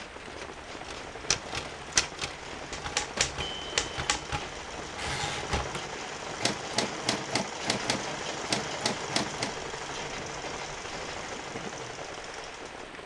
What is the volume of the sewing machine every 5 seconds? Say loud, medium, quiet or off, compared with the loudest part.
medium, loud, loud.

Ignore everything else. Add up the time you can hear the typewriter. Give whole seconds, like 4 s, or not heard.
9 s.